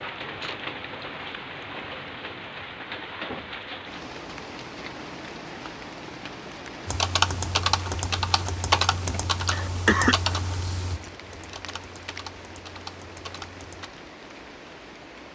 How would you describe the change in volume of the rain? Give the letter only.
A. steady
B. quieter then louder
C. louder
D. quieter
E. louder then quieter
D.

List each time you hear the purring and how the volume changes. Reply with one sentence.
The purring can't be heard in this clip.